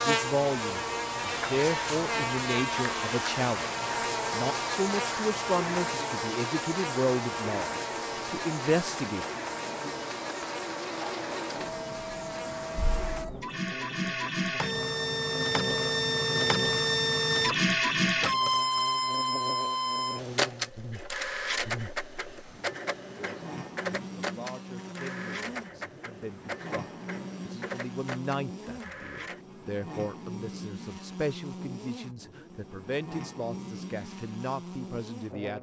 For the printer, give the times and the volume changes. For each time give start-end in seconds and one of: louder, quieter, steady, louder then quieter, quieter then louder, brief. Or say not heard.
0.0-29.4 louder then quieter.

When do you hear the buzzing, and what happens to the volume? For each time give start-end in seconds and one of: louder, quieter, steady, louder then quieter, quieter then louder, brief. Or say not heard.
0.0-35.5 quieter.